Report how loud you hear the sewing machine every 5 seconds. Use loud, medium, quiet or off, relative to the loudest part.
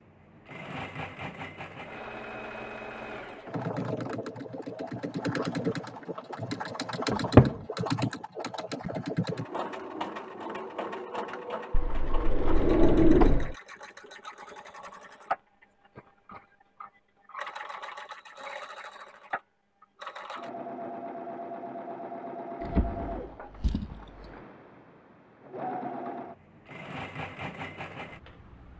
medium, loud, medium, medium, medium, medium.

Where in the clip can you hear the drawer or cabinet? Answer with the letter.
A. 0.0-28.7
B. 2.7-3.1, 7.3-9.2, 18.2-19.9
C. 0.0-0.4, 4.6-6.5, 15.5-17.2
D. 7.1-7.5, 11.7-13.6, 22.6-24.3
D.